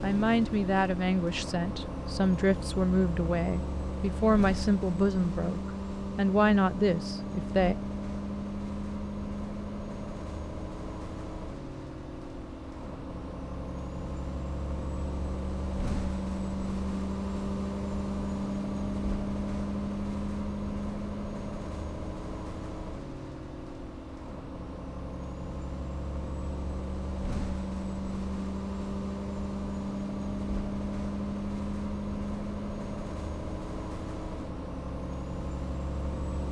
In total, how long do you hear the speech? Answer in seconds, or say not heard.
8 s.